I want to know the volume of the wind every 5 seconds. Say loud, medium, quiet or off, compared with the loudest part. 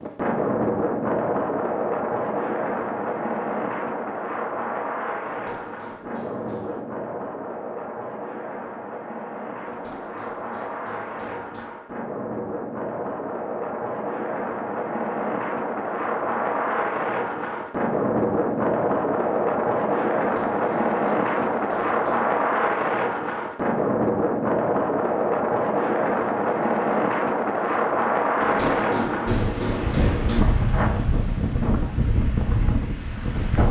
loud, medium, medium, loud, loud, loud, loud.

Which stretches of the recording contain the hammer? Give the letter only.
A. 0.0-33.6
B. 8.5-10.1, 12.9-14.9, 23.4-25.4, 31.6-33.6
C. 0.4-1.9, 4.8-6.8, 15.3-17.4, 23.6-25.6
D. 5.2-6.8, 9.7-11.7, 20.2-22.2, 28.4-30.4
D.